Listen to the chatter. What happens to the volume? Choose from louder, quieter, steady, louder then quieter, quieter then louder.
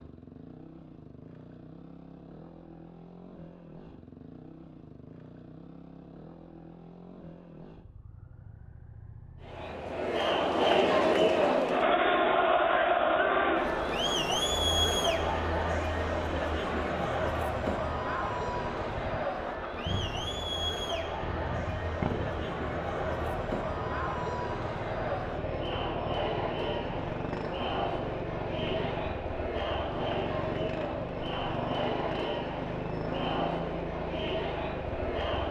quieter.